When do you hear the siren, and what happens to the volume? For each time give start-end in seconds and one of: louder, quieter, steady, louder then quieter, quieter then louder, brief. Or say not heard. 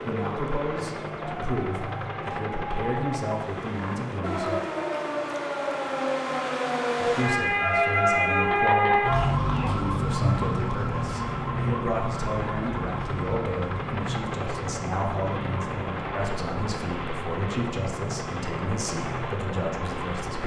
0.0-20.4 louder then quieter.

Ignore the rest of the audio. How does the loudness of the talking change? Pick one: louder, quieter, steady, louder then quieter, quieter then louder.
steady.